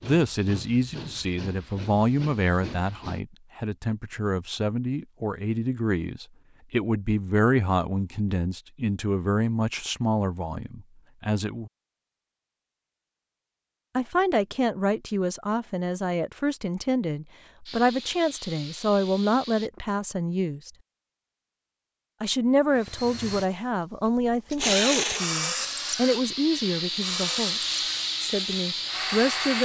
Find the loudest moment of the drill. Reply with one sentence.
The loudest moment of the drill is at 25 seconds.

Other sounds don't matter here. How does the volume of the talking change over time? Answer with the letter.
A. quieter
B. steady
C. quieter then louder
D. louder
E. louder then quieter
B.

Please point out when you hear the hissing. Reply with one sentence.
The hissing can be heard from 0.0 to 3.2 s, from 17.6 to 19.7 s and from 25.6 to 29.6 s.